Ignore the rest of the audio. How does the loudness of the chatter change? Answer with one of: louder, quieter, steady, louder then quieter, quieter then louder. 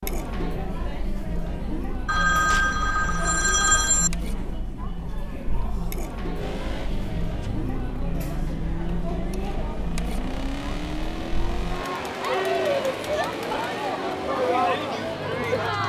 louder.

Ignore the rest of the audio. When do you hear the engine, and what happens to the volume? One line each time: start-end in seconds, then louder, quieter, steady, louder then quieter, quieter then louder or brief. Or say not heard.
6.3-15.8 steady.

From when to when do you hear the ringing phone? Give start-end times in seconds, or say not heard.
2.0-4.1.